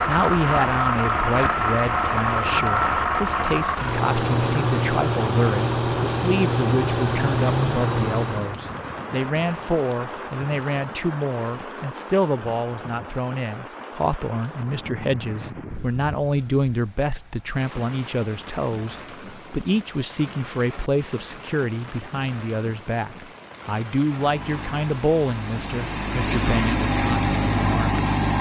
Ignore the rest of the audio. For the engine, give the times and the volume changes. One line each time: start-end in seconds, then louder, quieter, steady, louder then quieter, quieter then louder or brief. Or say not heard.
0.0-8.6 steady
24.1-28.3 louder.